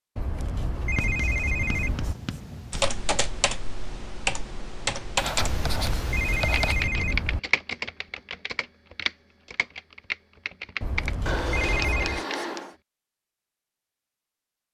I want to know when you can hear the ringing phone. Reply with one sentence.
You can hear the ringing phone from 0.1 to 2.1 s, from 5.4 to 7.4 s and from 10.8 to 12.2 s.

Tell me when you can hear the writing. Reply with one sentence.
The writing can be heard from 0.9 to 2.9 s, from 5.2 to 6.9 s and from 11.2 to 12.8 s.